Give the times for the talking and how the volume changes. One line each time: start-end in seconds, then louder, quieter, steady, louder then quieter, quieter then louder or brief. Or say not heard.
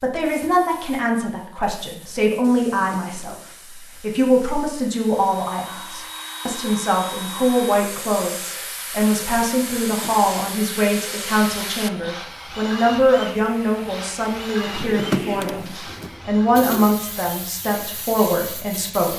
0.0-19.1 steady.